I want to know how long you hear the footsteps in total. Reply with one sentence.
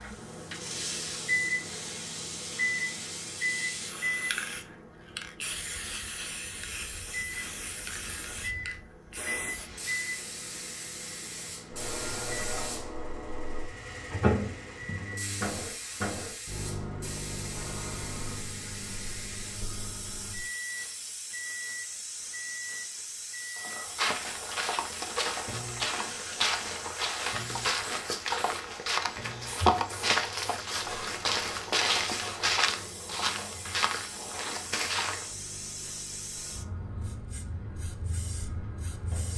You can hear the footsteps for 12 seconds altogether.